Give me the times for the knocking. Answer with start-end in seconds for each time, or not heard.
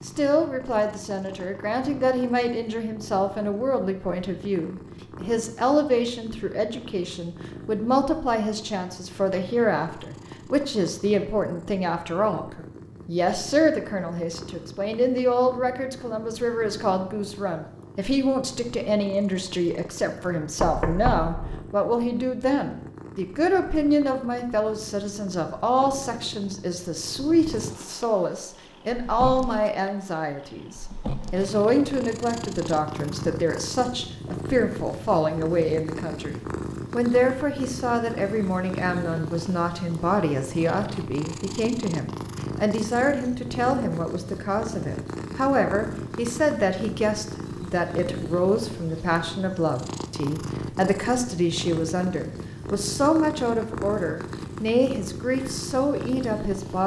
20.6-21.6.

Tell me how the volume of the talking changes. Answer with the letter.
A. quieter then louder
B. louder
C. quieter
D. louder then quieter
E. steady
E.